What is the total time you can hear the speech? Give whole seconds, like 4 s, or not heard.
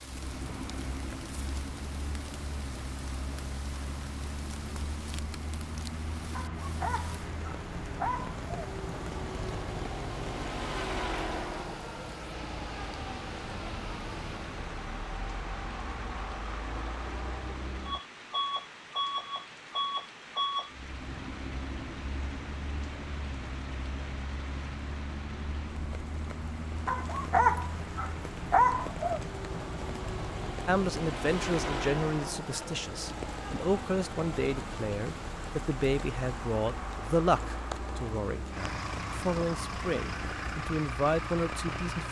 11 s.